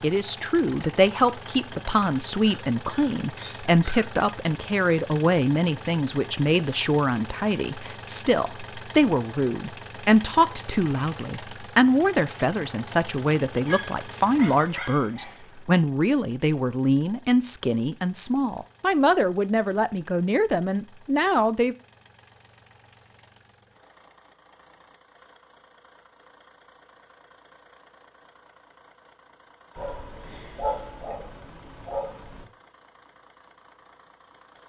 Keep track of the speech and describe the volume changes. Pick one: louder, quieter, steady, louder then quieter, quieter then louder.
steady.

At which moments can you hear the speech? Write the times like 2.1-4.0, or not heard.
0.0-21.8.